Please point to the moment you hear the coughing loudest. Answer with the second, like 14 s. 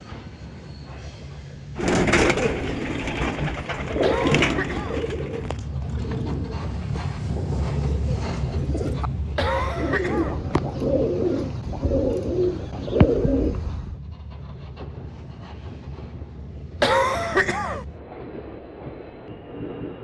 17 s.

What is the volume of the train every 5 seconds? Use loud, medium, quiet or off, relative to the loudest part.
medium, loud, medium, medium.